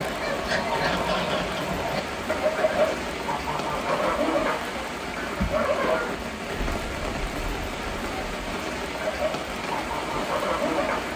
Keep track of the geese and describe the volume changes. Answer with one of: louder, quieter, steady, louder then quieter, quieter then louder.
quieter then louder.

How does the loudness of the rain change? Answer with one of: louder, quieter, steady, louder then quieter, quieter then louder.
steady.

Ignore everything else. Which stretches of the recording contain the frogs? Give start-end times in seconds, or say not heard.
not heard.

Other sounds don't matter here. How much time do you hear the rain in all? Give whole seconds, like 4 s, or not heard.
11 s.